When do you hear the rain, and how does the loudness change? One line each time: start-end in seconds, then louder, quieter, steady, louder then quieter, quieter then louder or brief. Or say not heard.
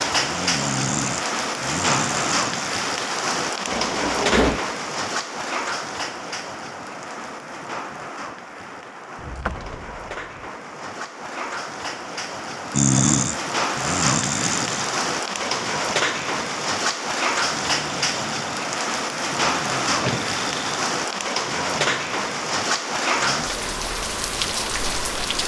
0.0-25.4 quieter then louder.